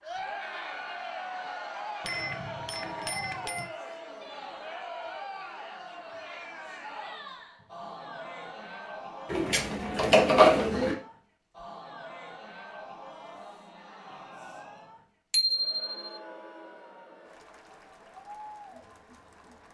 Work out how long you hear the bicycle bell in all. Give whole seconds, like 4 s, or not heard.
2 s.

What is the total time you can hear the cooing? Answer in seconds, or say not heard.
2 s.